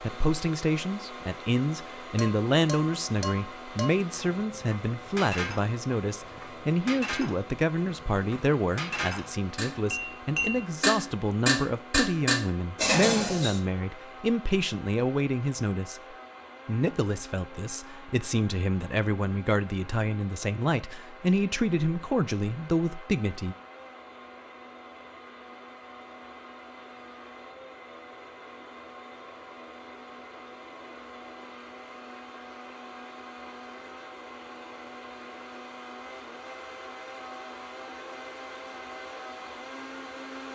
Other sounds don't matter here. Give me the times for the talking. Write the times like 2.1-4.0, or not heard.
0.0-23.6.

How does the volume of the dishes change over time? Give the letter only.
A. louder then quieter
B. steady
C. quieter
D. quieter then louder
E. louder
E.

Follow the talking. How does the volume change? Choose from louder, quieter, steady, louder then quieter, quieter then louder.
steady.